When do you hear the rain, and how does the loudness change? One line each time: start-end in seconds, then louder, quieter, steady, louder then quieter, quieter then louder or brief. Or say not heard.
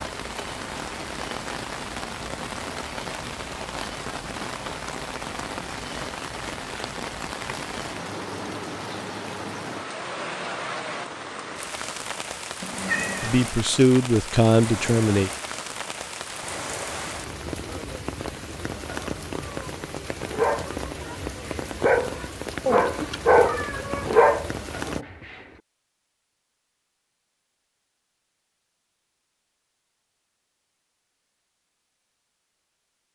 0.0-25.1 steady.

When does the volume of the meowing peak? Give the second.
13 s.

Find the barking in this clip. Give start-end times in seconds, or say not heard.
20.1-25.5.